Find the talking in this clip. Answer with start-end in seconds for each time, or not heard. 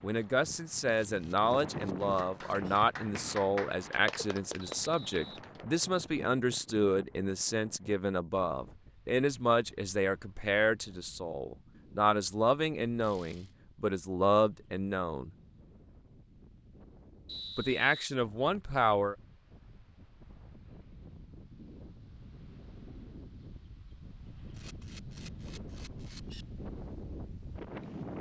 0.0-15.3, 17.6-19.1.